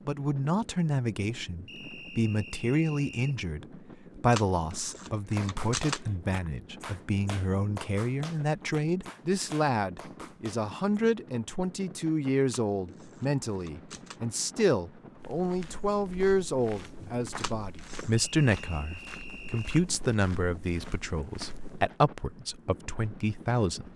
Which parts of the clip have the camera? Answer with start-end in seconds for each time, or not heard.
4.3-6.0, 12.5-14.2, 17.4-18.1.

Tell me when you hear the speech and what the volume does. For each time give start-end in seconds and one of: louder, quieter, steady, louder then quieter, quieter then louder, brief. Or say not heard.
0.1-23.9 steady.